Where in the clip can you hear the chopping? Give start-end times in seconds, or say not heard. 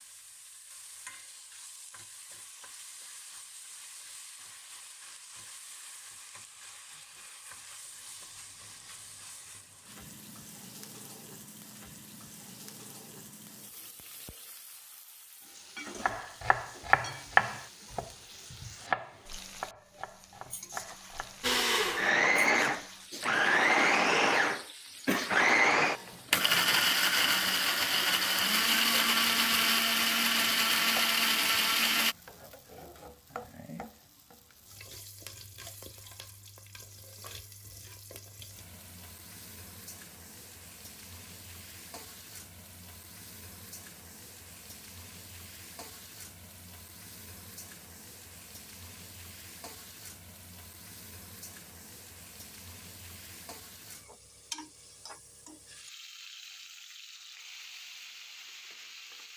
16.0-21.6.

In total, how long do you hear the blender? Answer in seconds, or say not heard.
11 s.